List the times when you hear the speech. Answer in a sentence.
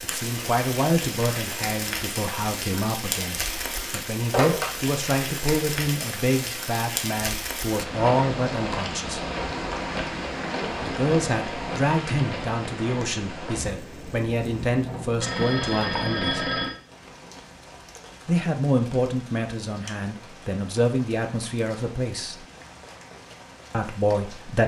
You can hear the speech from 0.0 to 9.2 s, from 10.8 to 16.4 s, from 18.2 to 22.4 s and from 23.7 to 24.6 s.